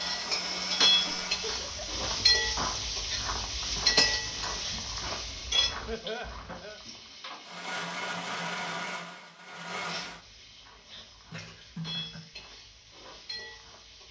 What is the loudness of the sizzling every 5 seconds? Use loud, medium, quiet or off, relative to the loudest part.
loud, medium, quiet.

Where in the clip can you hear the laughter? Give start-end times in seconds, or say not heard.
1.1-1.9, 5.8-6.8, 11.3-12.3.